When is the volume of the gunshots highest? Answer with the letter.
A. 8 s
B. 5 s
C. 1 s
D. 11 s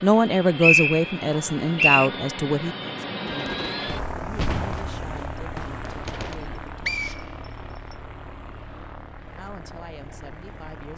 B.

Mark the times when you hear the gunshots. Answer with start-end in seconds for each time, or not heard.
3.2-6.3.